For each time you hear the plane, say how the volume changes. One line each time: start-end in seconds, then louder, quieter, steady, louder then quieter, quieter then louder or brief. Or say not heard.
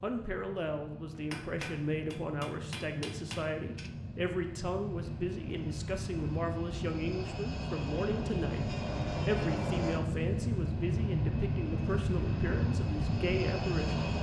0.0-14.1 louder.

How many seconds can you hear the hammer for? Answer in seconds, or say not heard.
3 s.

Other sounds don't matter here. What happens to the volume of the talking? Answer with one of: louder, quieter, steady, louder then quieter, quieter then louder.
steady.